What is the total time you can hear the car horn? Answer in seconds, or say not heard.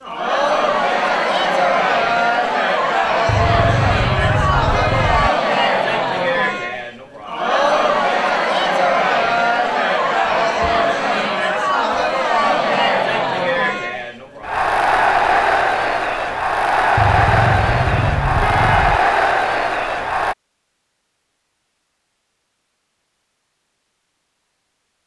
4 s.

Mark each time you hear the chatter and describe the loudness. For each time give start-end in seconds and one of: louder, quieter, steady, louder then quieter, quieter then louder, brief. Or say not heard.
0.0-20.4 steady.